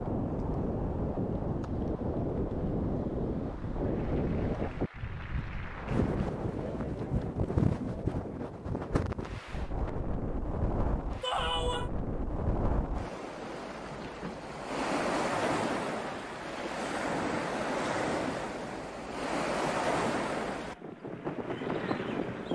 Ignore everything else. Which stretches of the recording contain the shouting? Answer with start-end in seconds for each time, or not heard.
11.2-11.9.